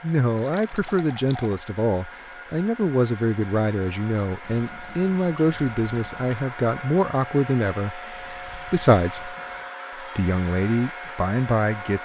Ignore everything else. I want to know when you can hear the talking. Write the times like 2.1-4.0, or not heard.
0.0-9.3, 9.9-12.0.